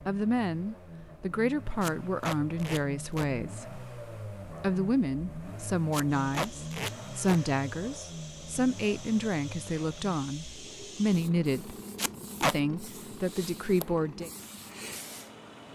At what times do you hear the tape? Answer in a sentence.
You can hear the tape from 1.8 to 3.3 s, from 5.9 to 7.4 s and from 11.9 to 12.6 s.